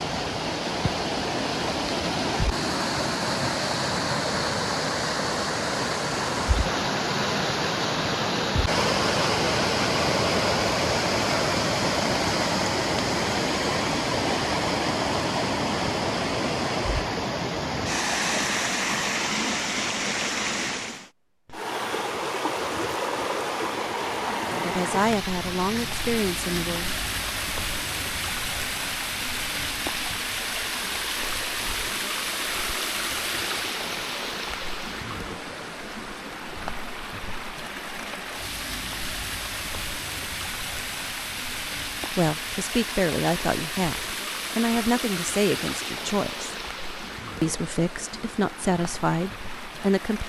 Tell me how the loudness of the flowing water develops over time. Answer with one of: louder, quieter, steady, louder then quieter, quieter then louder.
quieter.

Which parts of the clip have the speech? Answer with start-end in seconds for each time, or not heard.
24.6-26.9, 42.1-46.5, 47.4-50.2.